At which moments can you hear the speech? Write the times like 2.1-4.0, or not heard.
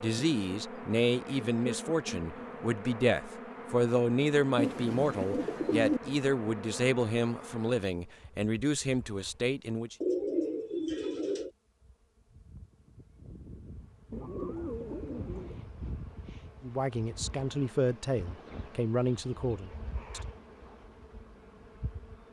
0.0-9.9, 16.6-20.2.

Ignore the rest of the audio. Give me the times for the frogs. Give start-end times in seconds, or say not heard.
not heard.